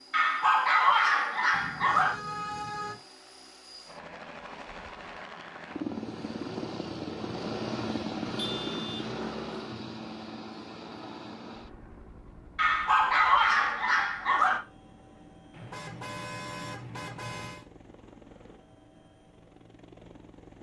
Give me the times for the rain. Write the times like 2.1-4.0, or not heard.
not heard.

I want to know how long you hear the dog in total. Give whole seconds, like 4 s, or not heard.
4 s.